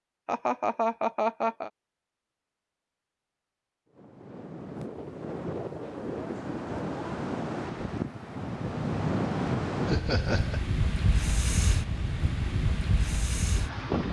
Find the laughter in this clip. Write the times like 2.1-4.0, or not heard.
0.2-1.7, 9.8-10.6.